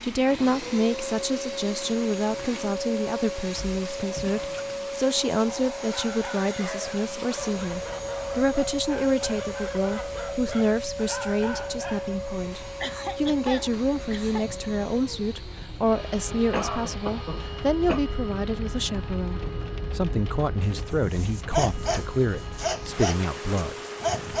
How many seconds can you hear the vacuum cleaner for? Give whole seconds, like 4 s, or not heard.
24 s.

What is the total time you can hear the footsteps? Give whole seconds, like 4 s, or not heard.
not heard.